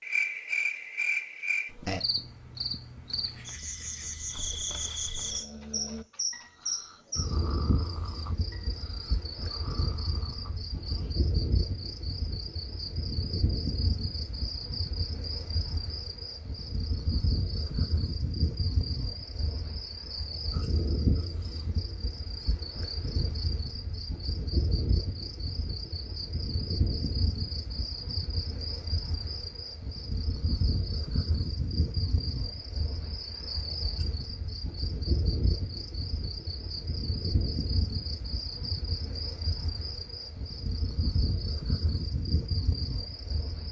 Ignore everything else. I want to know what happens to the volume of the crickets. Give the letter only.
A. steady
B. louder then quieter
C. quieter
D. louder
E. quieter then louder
A.